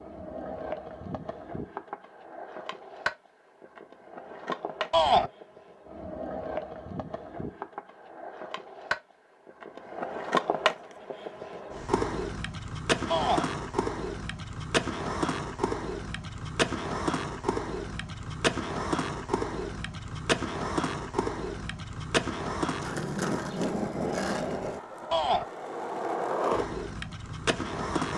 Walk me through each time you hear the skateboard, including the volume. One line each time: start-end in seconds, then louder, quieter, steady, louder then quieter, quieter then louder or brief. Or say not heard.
0.0-28.1 louder.